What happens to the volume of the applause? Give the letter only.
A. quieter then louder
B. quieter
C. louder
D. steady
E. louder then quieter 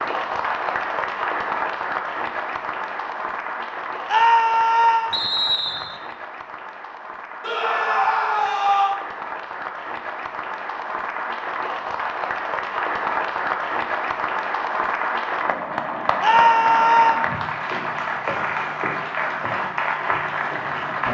A.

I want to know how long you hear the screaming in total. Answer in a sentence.
The screaming can be heard for 4 seconds in total.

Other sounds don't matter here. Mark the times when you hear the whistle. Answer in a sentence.
You can hear the whistle from 5.1 to 6.0 s.